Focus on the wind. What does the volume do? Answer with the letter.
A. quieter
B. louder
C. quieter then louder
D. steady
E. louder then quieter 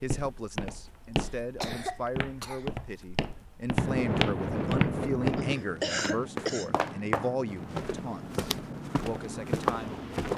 A.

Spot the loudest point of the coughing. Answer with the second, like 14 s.
6 s.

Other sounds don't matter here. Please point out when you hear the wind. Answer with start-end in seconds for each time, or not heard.
3.8-10.3.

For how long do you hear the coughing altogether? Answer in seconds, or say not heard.
3 s.